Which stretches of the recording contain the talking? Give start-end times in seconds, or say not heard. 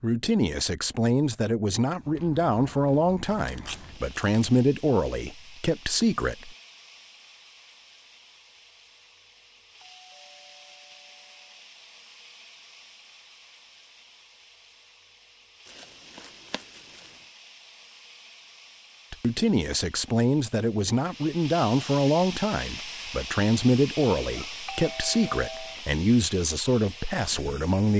0.0-6.5, 19.1-27.9.